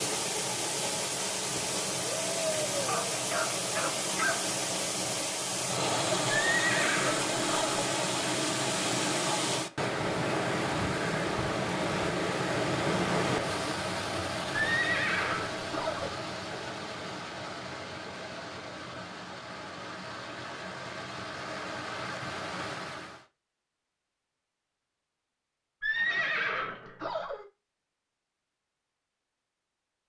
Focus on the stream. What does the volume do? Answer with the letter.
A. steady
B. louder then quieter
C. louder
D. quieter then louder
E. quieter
E.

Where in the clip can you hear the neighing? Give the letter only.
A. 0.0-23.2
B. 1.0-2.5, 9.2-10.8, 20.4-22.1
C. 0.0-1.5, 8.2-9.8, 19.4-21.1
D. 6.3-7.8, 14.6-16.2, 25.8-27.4
D.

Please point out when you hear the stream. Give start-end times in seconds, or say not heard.
0.0-23.2.